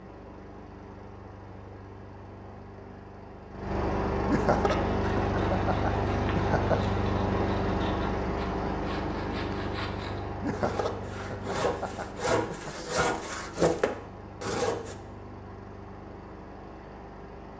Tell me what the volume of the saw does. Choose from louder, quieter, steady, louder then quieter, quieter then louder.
louder.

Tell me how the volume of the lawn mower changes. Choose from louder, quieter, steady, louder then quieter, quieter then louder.
louder then quieter.